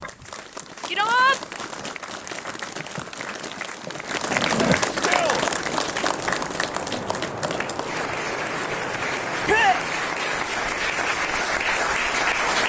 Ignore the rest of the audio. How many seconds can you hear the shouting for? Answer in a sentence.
The shouting can be heard for 2 seconds in total.